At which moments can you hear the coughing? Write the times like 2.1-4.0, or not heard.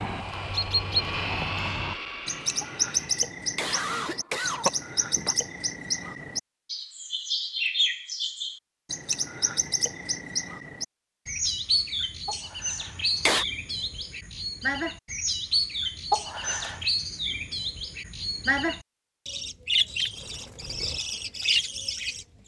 3.5-5.3, 12.2-13.4, 16.1-16.8.